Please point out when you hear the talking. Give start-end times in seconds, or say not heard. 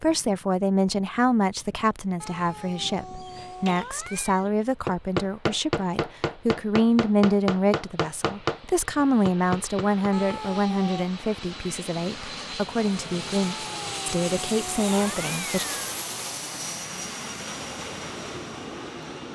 0.0-15.7.